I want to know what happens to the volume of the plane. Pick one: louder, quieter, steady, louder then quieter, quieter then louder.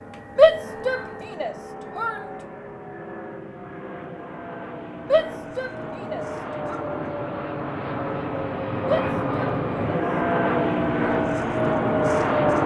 louder.